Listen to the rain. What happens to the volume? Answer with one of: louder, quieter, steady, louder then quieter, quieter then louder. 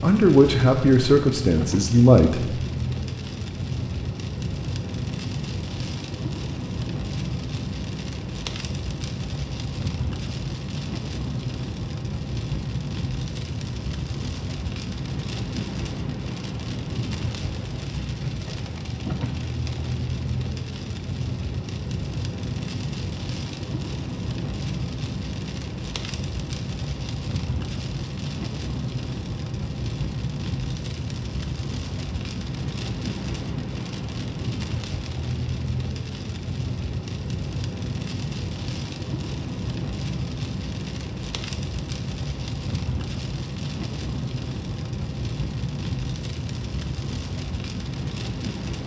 steady.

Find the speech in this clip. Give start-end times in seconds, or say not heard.
0.0-2.4.